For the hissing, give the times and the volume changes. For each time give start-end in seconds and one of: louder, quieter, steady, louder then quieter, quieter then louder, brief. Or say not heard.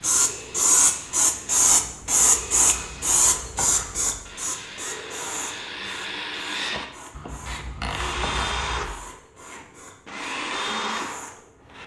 0.0-11.8 quieter.